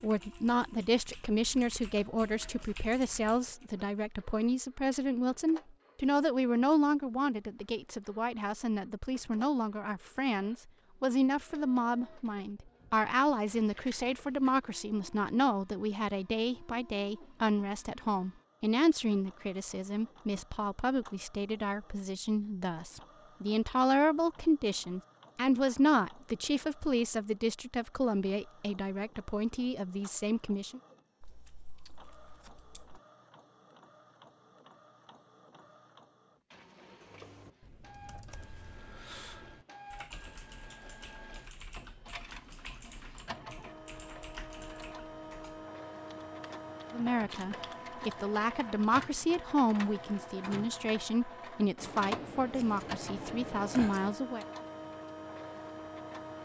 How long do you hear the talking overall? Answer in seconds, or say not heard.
38 s.